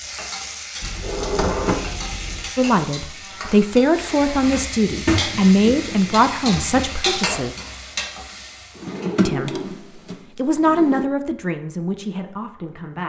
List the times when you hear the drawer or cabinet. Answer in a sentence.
The drawer or cabinet can be heard from 0.8 to 2.5 s, from 4.6 to 7.0 s and from 8.8 to 11.1 s.